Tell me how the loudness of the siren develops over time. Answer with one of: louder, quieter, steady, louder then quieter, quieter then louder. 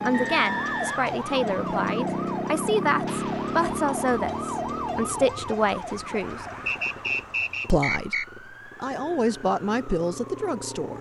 quieter.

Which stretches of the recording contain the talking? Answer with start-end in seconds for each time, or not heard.
0.0-6.5, 7.7-10.9.